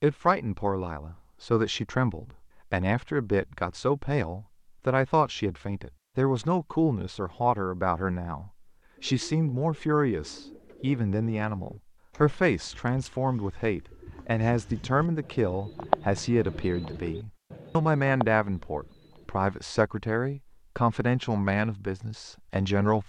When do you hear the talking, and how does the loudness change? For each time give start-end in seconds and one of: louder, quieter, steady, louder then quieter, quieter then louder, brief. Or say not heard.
0.0-23.0 steady.